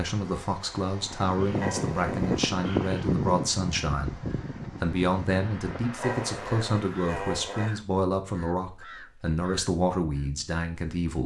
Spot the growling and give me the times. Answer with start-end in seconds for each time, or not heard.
1.6-2.5, 6.0-7.8.